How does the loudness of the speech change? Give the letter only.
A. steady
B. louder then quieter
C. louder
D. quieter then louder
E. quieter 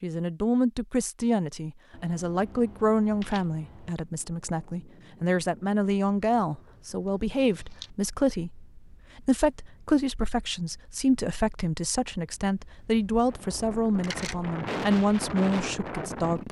A.